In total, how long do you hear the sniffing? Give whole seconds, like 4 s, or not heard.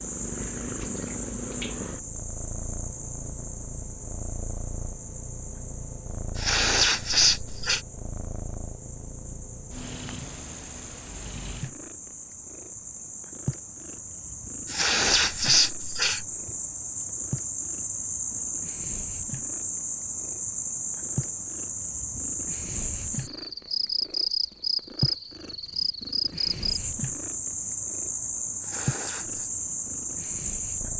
4 s.